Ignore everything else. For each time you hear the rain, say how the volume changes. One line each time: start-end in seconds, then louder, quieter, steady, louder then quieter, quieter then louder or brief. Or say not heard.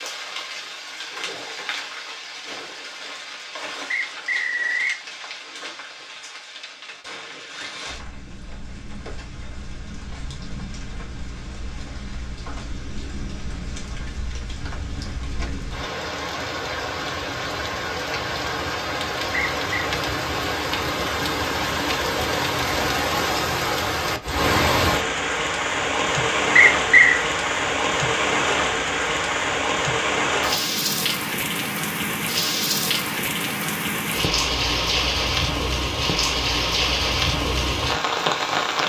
0.0-38.8 louder.